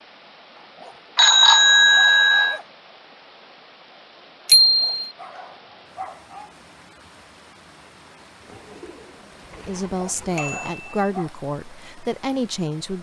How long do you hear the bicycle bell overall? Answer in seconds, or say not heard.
3 s.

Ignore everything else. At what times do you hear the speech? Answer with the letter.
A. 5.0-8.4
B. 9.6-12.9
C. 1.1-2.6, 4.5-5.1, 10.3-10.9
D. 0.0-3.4
B.